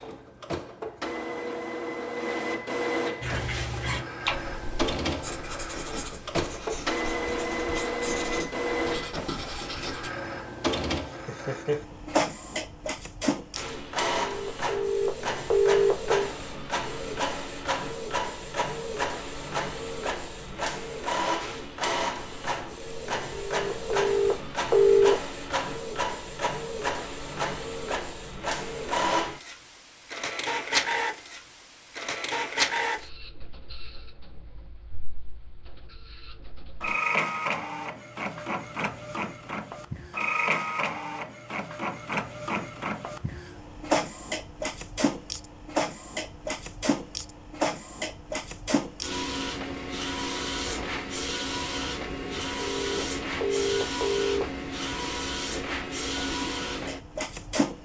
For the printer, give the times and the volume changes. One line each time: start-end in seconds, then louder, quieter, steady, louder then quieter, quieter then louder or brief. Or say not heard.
0.0-57.8 steady.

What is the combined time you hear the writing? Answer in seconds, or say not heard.
7 s.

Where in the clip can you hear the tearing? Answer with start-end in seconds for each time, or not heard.
not heard.